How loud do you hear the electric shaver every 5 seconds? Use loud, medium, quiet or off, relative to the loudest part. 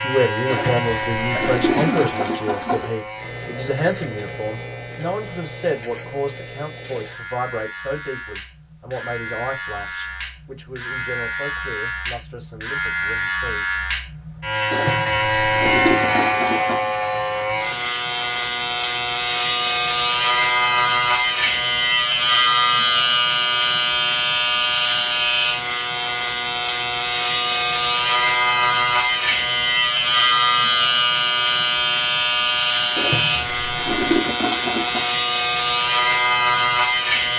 medium, quiet, medium, loud, loud, loud, loud, loud.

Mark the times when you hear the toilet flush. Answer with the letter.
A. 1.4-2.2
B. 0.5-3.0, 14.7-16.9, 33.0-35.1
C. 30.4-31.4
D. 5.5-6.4
B.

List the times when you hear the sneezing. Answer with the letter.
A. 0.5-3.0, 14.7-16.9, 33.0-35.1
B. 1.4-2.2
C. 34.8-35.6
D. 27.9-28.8
B.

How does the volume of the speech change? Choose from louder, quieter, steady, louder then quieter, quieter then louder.
quieter.